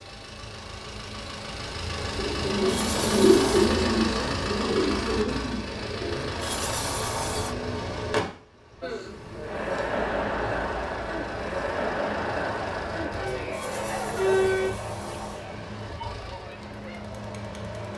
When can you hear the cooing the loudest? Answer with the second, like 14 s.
3 s.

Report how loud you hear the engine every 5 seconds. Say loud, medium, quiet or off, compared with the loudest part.
loud, loud, medium, medium.